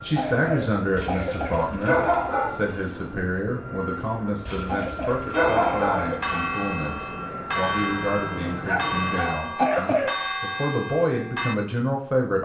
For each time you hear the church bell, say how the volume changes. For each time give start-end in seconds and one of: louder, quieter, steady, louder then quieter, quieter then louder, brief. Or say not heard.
5.3-11.6 steady.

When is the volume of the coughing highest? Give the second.
10 s.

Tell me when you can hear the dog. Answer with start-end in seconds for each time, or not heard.
0.9-2.5, 4.5-6.4, 8.7-10.2.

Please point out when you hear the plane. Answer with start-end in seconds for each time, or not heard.
0.0-9.3.